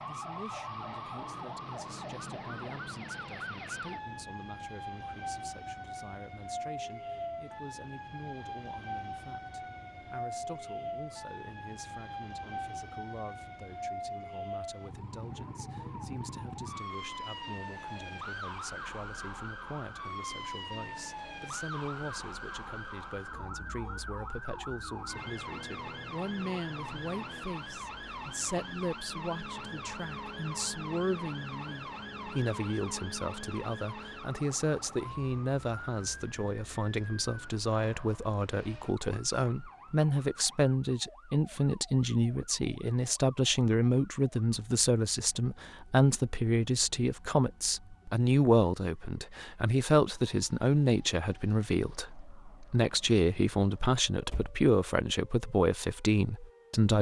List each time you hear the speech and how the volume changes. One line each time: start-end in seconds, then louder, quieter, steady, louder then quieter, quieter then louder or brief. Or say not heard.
0.1-56.9 louder.